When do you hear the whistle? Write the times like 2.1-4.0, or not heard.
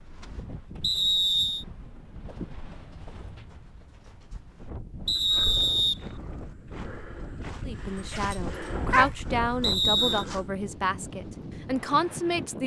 0.8-1.6, 5.0-6.5, 9.6-10.2.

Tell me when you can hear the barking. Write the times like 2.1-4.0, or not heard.
8.1-9.1.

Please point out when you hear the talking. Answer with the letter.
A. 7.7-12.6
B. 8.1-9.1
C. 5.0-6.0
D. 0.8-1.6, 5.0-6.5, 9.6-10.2
A.